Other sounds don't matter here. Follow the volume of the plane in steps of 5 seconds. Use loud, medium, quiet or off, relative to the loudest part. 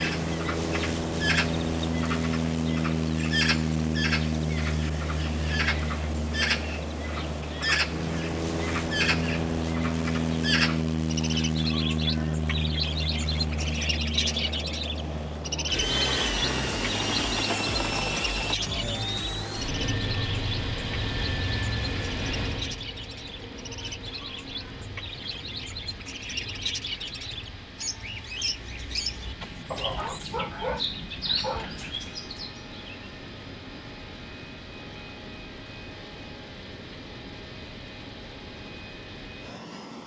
loud, loud, loud, loud, medium, quiet, quiet, quiet.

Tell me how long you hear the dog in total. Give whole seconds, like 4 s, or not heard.
2 s.